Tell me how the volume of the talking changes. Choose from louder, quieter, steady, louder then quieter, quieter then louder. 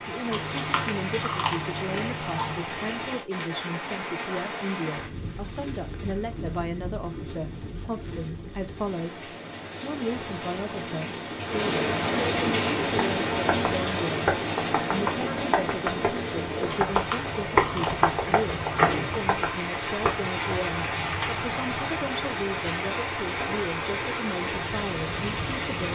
steady.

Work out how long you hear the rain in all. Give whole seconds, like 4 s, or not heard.
26 s.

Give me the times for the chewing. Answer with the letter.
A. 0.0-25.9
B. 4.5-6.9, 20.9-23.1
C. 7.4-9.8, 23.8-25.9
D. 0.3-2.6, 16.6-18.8
D.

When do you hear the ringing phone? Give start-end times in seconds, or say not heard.
not heard.